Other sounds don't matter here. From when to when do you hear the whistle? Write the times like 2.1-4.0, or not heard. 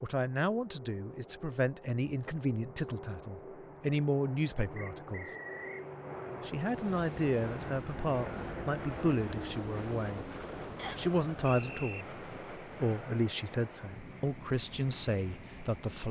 4.8-5.8, 10.8-12.1.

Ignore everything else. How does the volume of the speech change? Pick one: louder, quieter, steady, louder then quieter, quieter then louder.
steady.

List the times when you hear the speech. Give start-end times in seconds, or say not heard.
0.0-5.3, 6.5-10.3, 10.9-16.0.